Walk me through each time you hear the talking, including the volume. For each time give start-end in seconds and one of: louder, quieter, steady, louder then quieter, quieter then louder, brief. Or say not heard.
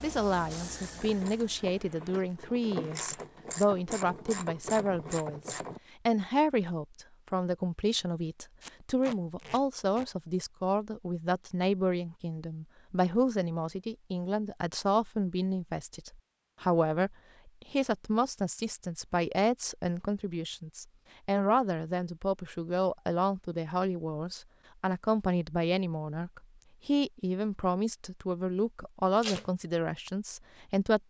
0.0-31.0 steady.